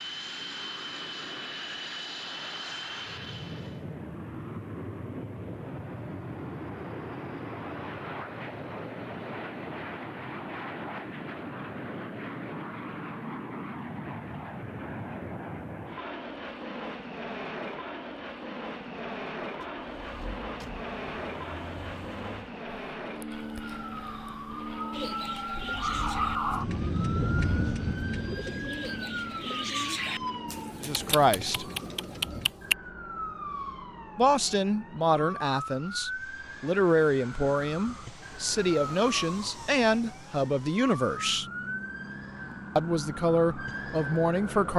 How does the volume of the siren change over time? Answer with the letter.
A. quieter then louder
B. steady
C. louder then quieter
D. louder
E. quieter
C.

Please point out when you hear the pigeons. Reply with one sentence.
You can hear the pigeons from 24.9 to 32.8 s.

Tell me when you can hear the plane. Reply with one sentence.
You can hear the plane from 0.0 to 44.7 s.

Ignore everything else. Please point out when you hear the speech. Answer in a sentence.
The speech can be heard from 30.8 to 31.6 s, from 34.1 to 41.5 s and from 42.8 to 44.7 s.